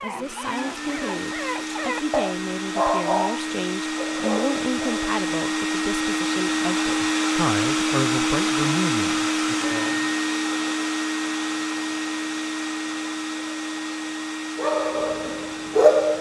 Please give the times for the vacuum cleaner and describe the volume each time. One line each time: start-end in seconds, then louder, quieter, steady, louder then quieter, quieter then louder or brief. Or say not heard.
0.0-16.1 louder then quieter.